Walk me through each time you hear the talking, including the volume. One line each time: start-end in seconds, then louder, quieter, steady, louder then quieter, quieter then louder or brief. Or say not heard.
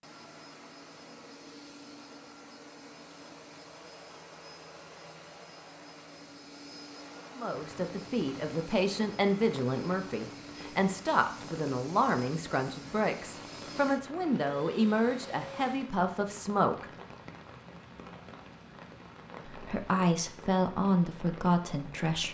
7.3-16.9 steady
19.5-22.3 brief.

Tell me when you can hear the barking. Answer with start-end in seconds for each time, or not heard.
not heard.